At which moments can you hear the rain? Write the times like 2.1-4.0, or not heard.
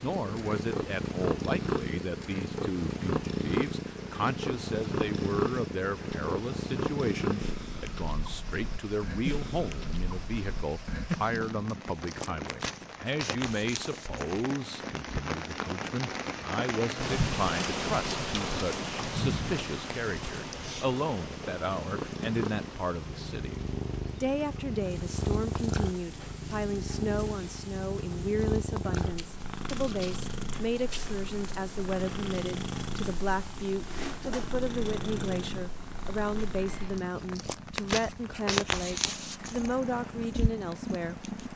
0.0-41.5.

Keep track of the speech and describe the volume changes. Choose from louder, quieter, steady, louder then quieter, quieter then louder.
steady.